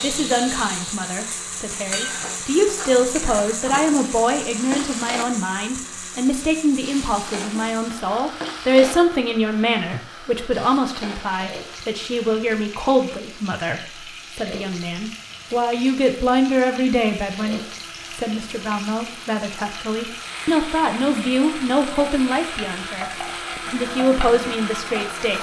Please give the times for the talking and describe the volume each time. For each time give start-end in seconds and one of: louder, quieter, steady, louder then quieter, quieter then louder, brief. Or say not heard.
0.0-25.3 steady.